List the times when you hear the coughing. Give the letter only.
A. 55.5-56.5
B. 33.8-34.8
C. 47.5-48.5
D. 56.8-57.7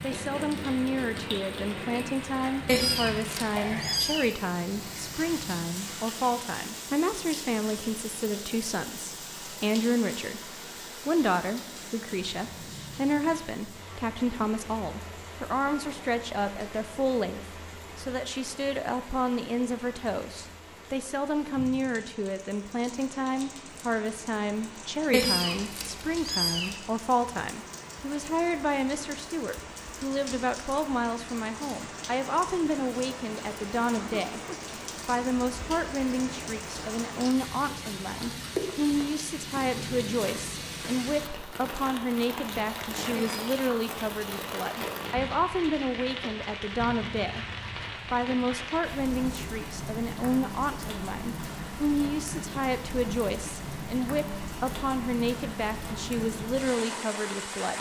B.